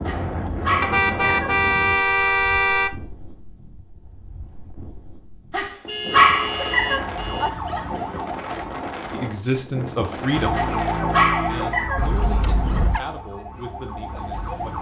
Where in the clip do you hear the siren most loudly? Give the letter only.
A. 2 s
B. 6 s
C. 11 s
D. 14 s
C.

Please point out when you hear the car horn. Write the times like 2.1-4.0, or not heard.
0.8-3.0, 5.8-7.5, 11.9-13.0.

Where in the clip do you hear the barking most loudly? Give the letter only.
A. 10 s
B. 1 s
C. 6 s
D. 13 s
C.